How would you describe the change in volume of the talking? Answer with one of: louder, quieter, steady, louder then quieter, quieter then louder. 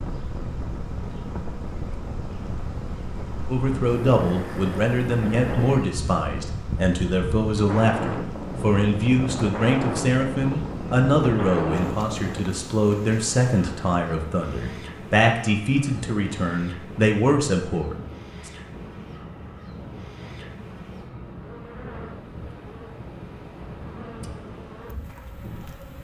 steady.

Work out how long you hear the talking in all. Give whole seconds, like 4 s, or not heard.
15 s.